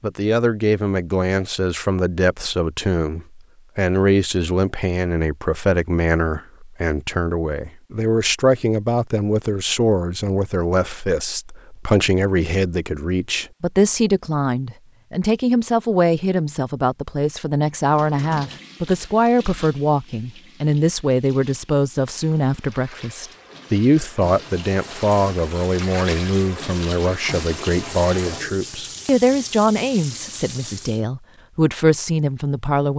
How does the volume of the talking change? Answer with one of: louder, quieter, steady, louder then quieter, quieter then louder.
steady.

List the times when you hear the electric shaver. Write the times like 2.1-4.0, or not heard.
not heard.